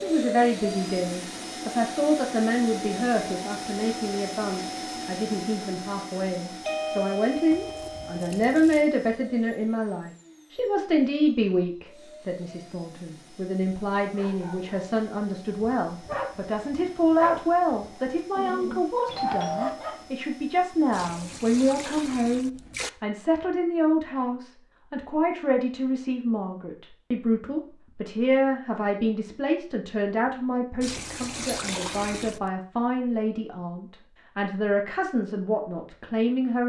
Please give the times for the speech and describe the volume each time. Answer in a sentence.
You can hear the speech from 0.0 to 36.6 s, at a steady volume.